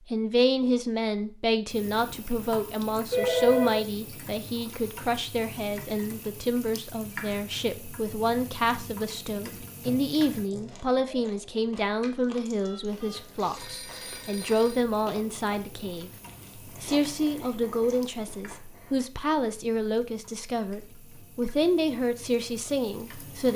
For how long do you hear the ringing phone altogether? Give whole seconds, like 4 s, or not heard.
3 s.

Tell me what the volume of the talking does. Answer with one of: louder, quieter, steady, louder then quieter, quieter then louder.
steady.